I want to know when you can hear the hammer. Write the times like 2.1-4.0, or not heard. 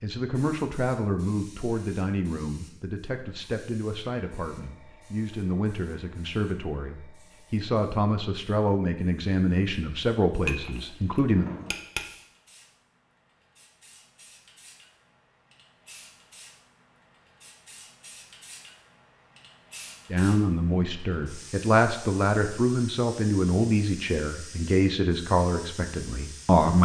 10.4-12.1.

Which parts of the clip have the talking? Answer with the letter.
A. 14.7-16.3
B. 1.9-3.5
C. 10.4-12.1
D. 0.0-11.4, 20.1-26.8
D.